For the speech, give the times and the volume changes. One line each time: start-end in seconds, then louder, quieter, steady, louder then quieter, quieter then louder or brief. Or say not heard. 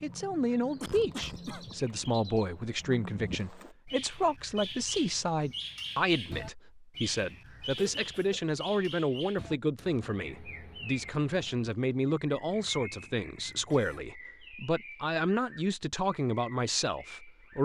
0.0-17.6 steady.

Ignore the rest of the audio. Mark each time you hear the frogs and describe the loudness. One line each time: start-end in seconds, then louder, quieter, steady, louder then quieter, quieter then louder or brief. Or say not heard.
not heard.